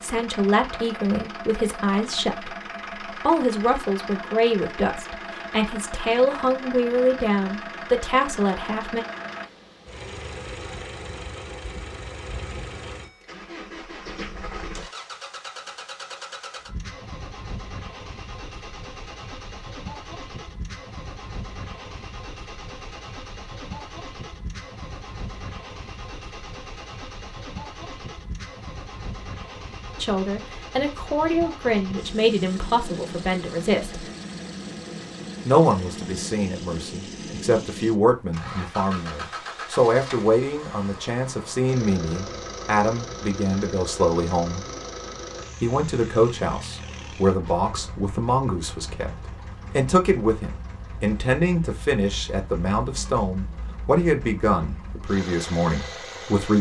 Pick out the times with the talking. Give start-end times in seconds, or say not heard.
0.0-9.1, 30.0-34.0, 35.5-44.6, 45.6-49.1, 49.8-56.5.